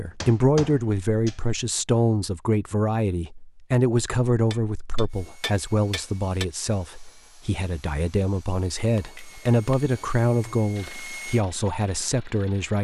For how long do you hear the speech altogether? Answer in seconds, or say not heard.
13 s.